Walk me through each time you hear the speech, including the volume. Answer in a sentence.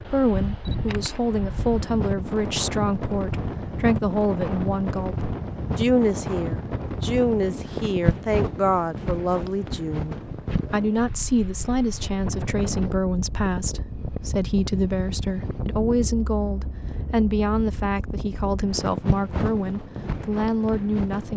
You can hear the speech from 0.0 to 21.3 s, at a steady volume.